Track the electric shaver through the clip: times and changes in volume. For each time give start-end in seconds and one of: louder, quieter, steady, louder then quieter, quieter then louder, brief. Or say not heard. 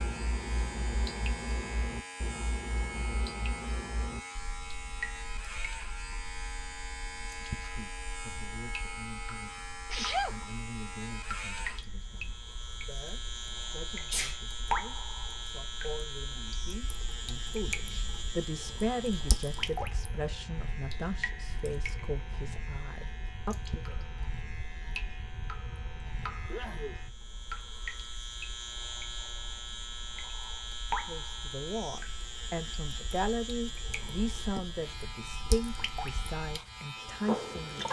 0.0-37.8 steady.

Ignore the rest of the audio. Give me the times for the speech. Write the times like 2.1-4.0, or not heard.
7.2-23.9, 31.0-37.8.